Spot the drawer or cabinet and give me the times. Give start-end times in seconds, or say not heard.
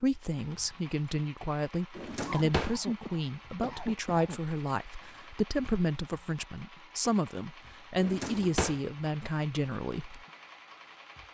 1.9-2.8, 8.0-8.8.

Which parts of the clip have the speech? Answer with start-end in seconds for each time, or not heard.
0.0-10.2.